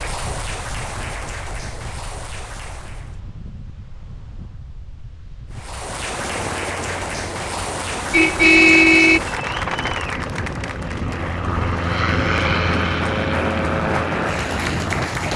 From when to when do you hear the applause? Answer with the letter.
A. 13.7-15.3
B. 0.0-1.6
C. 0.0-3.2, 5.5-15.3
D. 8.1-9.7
C.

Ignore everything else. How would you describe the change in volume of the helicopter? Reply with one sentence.
The loudness of the helicopter goes up.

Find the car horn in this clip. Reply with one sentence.
You can hear the car horn from 8.1 to 9.7 s.